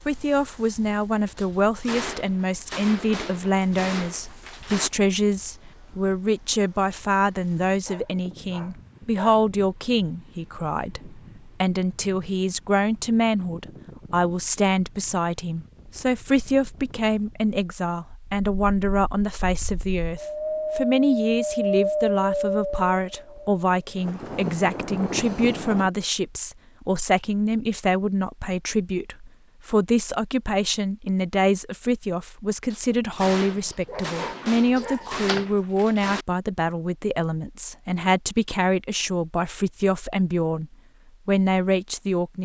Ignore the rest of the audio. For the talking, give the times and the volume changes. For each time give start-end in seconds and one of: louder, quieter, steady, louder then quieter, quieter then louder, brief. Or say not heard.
0.0-42.4 steady.